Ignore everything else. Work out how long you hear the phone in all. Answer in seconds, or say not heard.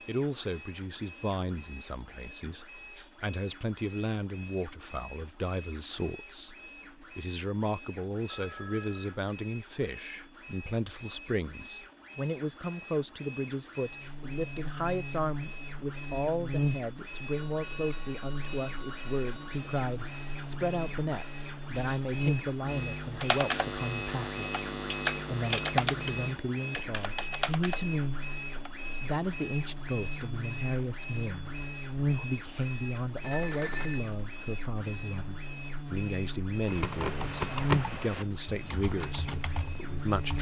4 s.